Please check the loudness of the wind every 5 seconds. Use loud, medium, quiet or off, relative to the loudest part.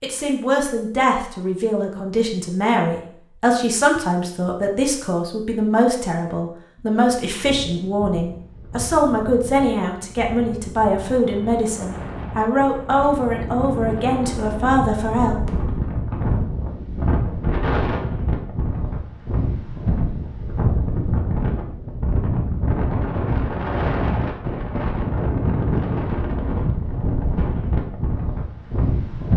off, quiet, medium, loud, loud, loud.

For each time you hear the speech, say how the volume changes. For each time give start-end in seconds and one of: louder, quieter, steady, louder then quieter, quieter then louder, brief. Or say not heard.
0.0-15.6 steady.